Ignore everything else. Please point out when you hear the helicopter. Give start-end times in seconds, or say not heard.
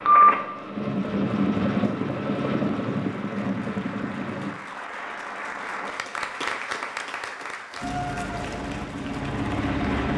0.0-4.5, 7.8-10.1.